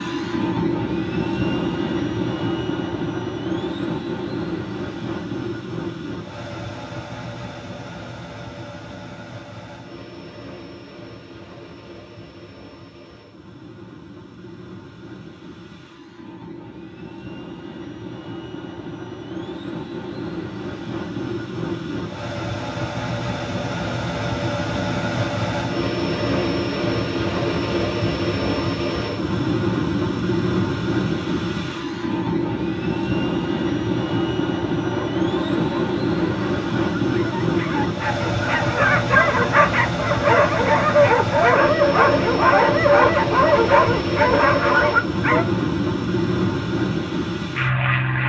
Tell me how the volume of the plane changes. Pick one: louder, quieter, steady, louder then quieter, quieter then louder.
quieter then louder.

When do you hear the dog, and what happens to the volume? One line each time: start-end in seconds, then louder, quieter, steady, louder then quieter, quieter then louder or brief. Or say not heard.
34.9-45.5 louder.